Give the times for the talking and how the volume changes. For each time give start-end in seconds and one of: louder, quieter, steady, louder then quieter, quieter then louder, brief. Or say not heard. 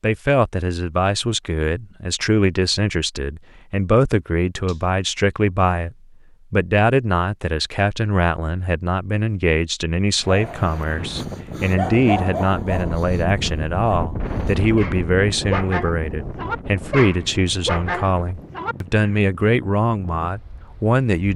0.0-21.3 steady.